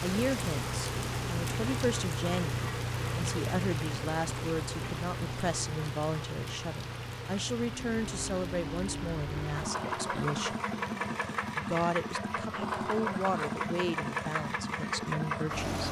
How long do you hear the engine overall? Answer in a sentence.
You can hear the engine for 16 seconds altogether.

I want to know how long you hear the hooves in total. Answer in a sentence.
The hooves can't be heard in this clip.